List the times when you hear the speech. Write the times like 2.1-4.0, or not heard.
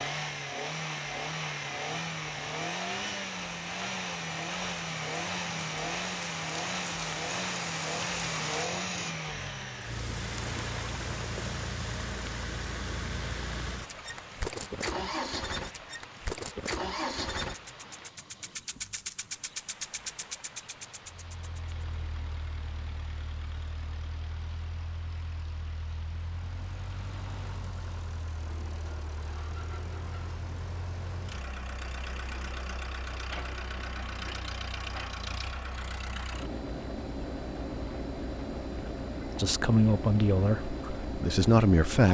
39.4-42.0.